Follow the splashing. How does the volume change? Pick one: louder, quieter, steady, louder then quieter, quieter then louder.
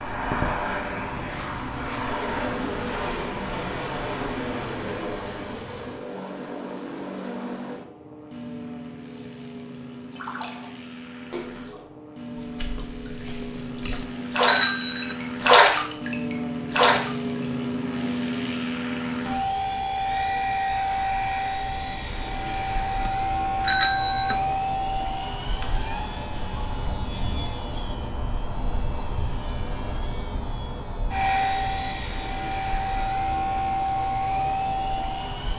quieter then louder.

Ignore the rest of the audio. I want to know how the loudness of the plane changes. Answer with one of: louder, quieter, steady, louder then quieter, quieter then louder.
quieter then louder.